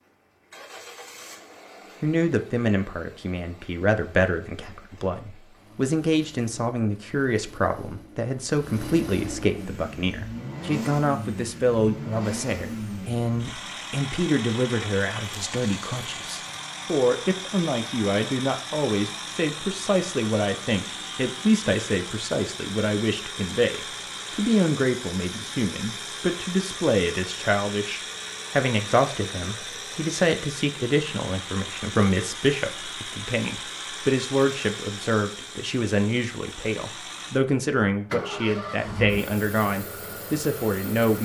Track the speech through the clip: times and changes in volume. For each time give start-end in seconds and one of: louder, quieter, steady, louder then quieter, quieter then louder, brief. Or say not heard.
2.0-41.2 steady.